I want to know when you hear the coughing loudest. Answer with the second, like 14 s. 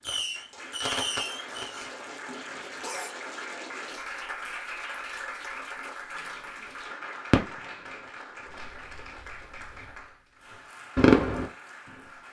3 s.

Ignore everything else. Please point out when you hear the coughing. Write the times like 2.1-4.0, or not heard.
1.4-3.1.